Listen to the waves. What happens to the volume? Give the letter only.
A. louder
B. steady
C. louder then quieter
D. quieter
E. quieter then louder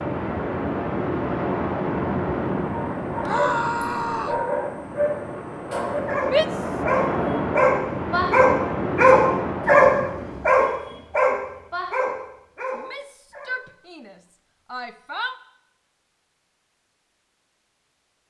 E.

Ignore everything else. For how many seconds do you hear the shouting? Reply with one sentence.
You can hear the shouting for 4 seconds altogether.